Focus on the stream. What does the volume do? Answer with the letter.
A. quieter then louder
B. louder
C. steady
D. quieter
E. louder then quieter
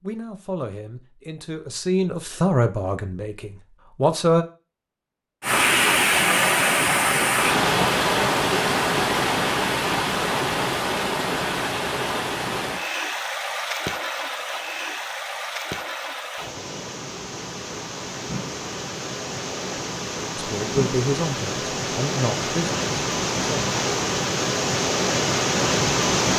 A.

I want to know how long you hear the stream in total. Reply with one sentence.
You can hear the stream for 21 seconds altogether.